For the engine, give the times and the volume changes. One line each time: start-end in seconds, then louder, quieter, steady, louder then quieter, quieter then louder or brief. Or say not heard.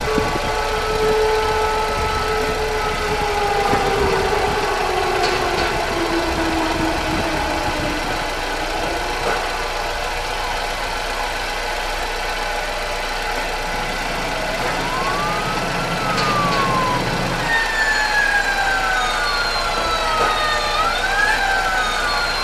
0.0-22.3 steady.